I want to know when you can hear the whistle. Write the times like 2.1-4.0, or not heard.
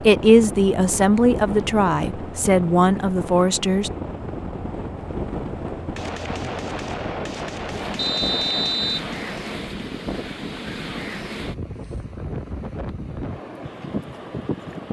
8.0-9.1.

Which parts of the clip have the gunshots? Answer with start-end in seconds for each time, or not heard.
6.0-9.7.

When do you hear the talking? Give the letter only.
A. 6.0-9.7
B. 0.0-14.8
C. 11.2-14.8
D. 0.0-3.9
D.